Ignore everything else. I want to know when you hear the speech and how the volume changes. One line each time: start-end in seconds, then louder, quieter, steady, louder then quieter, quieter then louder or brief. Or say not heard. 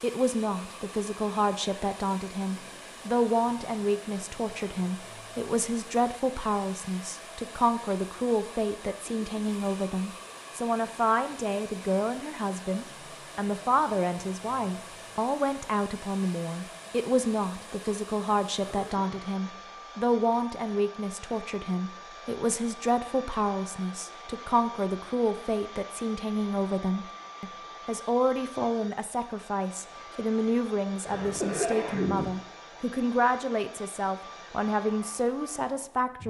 0.0-36.2 steady.